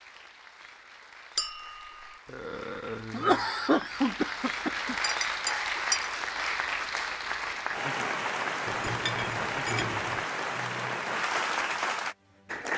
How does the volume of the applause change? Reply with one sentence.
The loudness of the applause goes up.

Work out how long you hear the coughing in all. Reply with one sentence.
The coughing can be heard for 3 seconds in total.